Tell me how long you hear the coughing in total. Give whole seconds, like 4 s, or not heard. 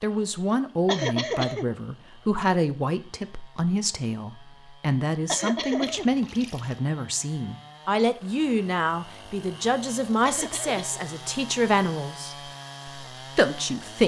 2 s.